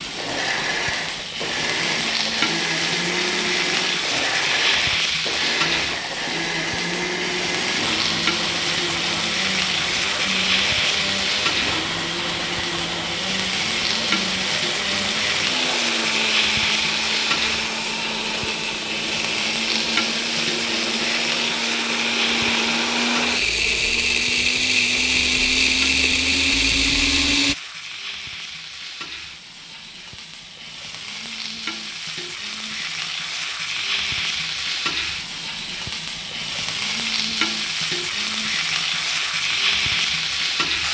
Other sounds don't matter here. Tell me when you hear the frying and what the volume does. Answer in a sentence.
The frying can be heard from 0.0 to 40.8 s, getting quieter then louder.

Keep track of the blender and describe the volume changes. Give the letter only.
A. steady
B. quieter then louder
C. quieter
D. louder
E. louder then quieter
D.